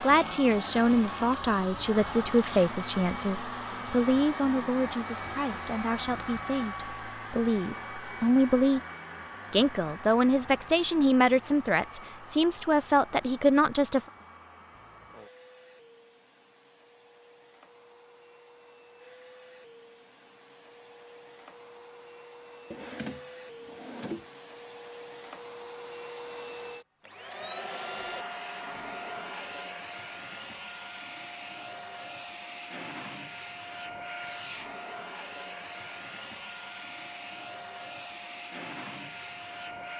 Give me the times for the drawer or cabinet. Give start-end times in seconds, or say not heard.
22.7-24.3.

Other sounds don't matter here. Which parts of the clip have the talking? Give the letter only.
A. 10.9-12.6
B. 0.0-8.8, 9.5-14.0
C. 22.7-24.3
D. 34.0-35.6
B.